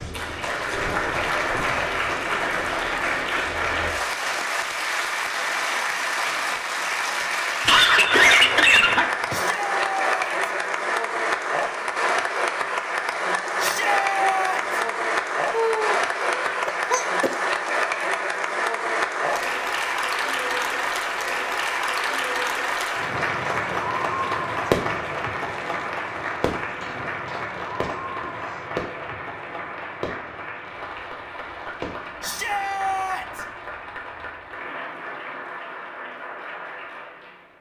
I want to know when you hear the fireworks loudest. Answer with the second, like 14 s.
25 s.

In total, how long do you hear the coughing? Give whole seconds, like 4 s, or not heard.
5 s.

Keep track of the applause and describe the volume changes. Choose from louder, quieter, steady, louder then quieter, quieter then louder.
quieter.